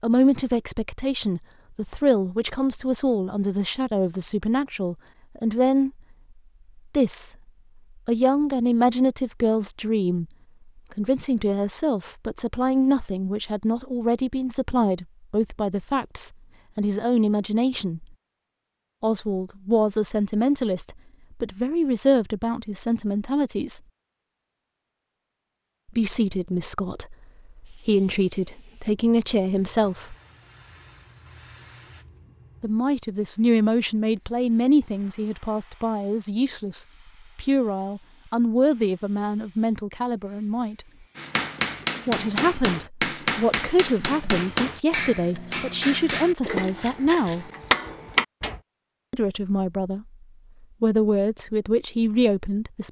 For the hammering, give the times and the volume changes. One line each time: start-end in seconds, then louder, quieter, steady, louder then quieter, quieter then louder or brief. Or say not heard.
41.1-48.6 steady.